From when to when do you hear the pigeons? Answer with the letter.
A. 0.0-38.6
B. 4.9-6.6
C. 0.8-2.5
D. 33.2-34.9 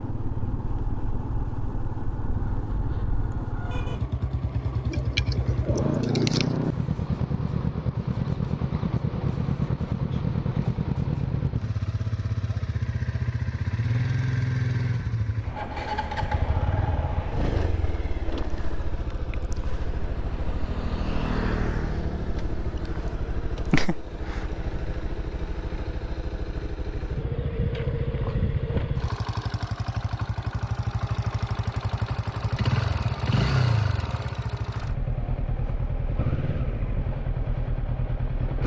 B.